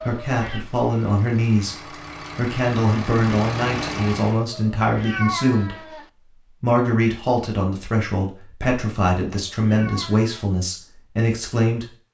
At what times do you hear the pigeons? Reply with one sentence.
You can't hear the pigeons here.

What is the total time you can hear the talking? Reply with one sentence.
The talking can be heard for 12 seconds in total.